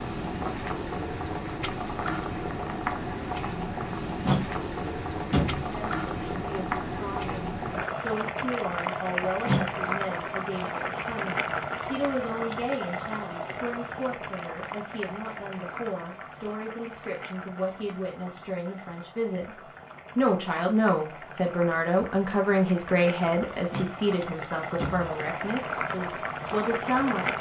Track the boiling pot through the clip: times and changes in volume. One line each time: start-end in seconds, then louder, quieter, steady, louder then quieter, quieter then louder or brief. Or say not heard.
0.0-27.3 quieter then louder.